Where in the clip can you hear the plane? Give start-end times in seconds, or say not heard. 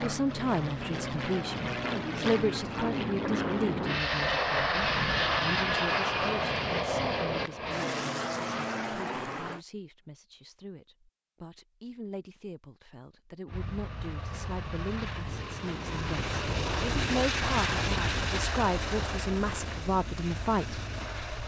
0.0-9.6, 13.4-21.4.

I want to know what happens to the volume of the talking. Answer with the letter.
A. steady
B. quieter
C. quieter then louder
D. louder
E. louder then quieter
C.